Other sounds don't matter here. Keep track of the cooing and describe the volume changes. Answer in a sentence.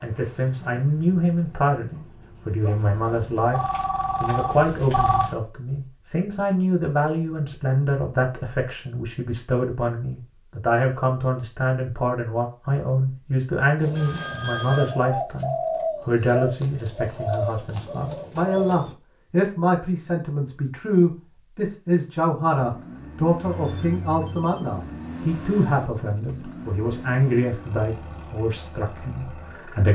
The volume of the cooing goes up, then down.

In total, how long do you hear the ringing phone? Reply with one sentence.
You can hear the ringing phone for 6 seconds altogether.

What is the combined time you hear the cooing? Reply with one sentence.
The cooing can be heard for 5 seconds in total.